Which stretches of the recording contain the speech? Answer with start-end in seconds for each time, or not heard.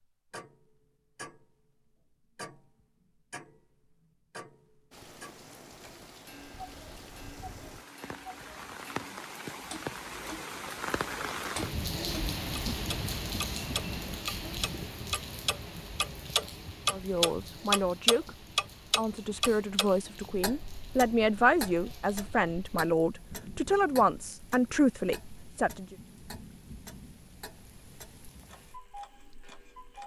16.9-25.9.